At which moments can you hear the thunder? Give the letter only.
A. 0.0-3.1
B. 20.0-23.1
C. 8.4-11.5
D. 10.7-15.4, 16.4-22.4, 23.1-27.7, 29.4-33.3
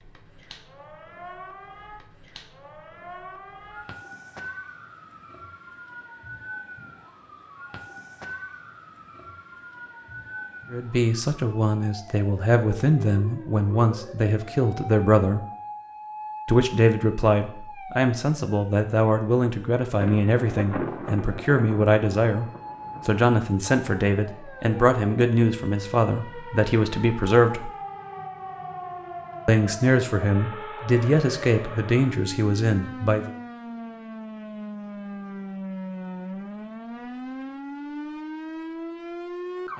B.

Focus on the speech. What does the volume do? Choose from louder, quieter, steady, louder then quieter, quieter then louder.
steady.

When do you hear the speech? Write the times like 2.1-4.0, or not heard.
10.7-15.4, 16.4-22.4, 23.1-27.7, 29.4-33.3.